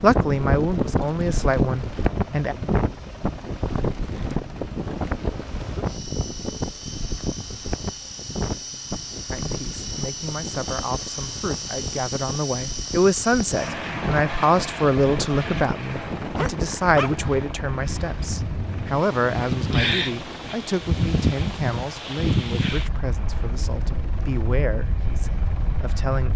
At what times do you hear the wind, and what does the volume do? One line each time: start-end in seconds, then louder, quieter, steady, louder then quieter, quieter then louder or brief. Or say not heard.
0.0-26.3 quieter then louder.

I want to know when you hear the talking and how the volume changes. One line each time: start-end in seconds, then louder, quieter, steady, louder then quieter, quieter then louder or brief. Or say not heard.
0.0-2.5 brief
9.3-26.3 louder then quieter.